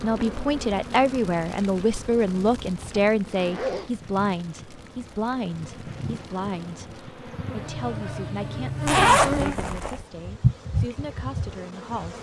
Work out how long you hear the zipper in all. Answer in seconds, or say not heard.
2 s.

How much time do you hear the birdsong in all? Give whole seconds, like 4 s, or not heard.
not heard.